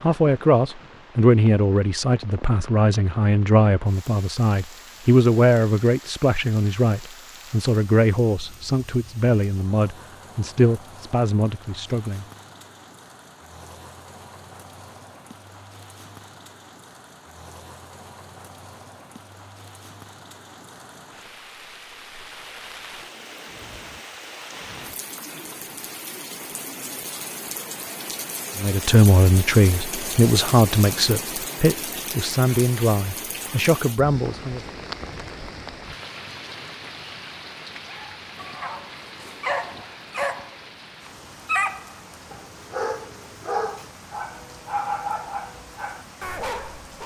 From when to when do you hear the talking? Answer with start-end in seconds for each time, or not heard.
0.0-12.2, 28.6-34.6.